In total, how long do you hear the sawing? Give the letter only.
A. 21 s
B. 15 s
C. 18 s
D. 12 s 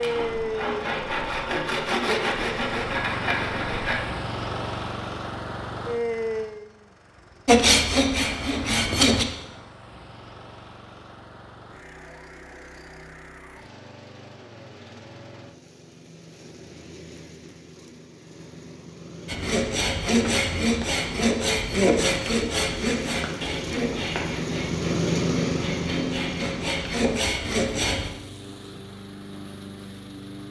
B.